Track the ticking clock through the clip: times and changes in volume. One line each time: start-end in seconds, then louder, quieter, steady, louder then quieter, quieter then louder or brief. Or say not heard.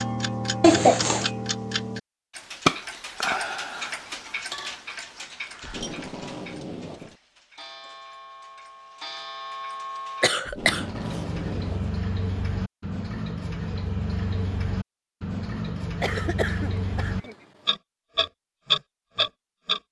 0.0-19.8 quieter then louder.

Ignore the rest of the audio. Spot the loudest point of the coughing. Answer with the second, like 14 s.
1 s.